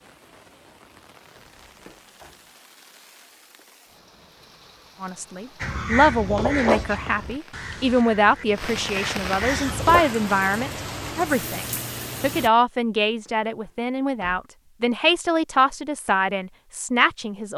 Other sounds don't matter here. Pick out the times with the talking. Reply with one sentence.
The talking can be heard from 5.0 to 17.5 s.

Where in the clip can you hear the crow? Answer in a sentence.
The crow can be heard from 5.6 to 10.1 s.